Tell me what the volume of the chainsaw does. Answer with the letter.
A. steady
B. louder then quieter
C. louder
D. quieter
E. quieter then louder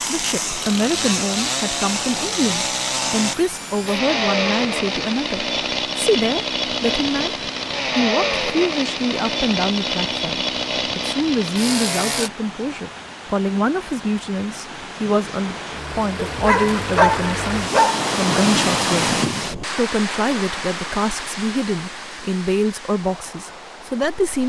A.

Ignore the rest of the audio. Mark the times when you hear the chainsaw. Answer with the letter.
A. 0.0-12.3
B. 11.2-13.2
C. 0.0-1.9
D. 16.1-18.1
A.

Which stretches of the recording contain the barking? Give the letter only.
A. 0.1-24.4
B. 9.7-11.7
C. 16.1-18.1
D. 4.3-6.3
C.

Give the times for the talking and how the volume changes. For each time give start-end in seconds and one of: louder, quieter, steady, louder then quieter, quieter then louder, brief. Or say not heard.
0.1-24.4 steady.